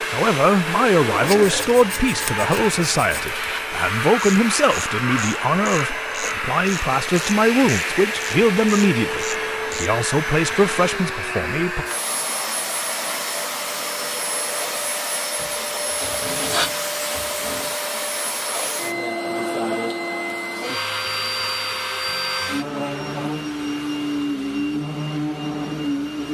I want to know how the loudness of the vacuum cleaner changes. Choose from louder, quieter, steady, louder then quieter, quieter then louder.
steady.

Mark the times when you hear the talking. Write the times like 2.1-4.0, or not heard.
0.1-11.8.